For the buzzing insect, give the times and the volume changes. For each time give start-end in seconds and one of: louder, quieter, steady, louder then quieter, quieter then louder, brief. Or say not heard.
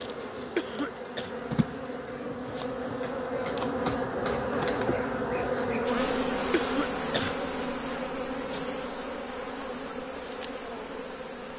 0.0-11.5 louder then quieter.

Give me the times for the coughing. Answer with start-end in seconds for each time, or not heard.
0.6-1.4, 6.5-7.4.